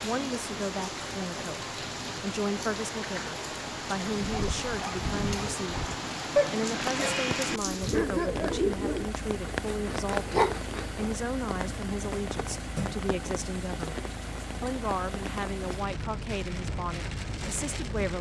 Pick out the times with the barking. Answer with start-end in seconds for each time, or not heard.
4.1-11.2.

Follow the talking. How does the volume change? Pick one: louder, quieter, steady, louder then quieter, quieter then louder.
steady.